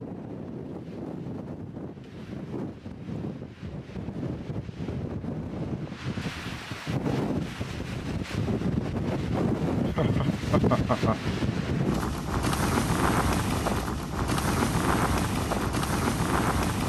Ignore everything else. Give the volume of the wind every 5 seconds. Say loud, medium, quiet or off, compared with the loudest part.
medium, loud, loud, loud.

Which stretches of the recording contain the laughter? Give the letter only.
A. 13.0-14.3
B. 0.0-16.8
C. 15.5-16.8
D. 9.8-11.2
D.